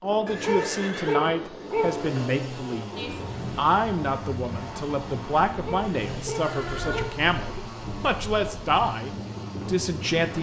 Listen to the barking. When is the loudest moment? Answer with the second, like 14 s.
1 s.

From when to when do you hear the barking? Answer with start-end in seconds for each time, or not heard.
0.4-1.9, 5.6-7.6.